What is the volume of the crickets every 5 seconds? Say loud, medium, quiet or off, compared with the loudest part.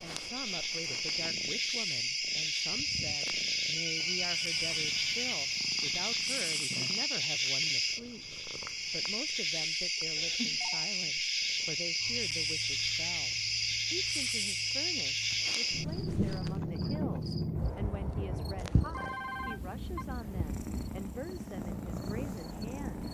loud, loud, loud, loud, quiet.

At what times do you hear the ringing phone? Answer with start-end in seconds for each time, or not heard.
3.8-5.3, 10.2-10.9, 18.9-20.1.